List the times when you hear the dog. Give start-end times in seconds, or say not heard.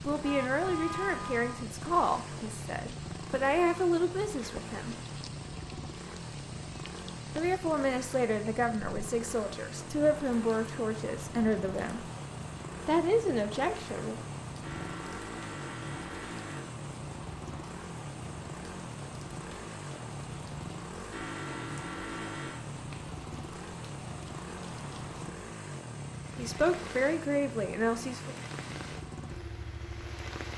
not heard.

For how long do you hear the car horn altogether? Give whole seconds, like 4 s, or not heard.
5 s.